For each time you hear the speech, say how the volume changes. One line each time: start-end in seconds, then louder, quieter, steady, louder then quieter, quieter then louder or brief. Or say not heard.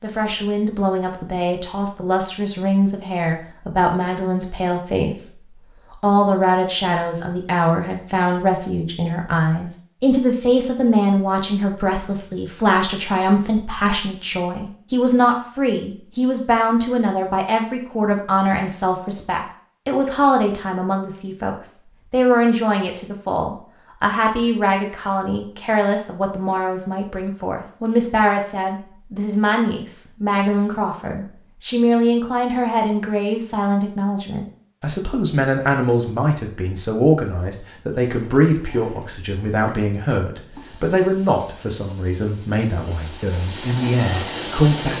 0.0-44.9 steady.